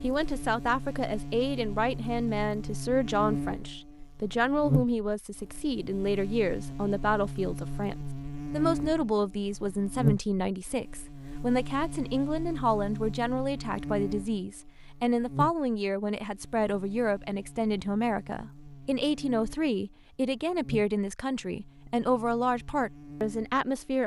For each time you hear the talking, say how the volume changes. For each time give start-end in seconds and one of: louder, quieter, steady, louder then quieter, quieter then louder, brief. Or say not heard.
0.0-24.0 steady.